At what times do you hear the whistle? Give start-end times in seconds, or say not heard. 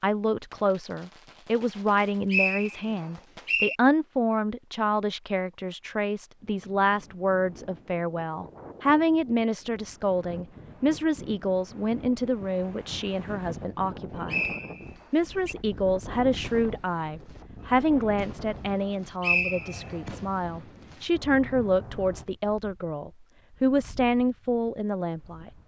2.3-3.8, 14.2-15.6, 18.8-19.9.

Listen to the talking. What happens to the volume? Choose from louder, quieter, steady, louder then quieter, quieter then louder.
steady.